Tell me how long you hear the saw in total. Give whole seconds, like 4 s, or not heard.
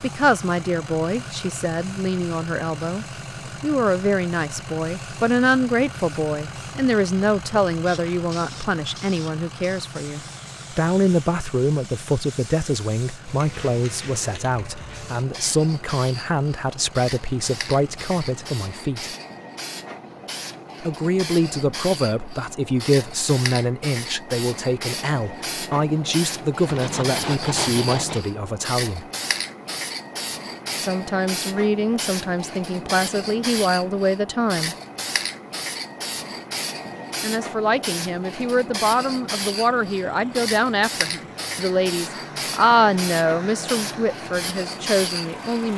2 s.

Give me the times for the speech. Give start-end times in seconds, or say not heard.
0.0-19.1, 20.8-29.1, 30.8-34.8, 37.2-45.7.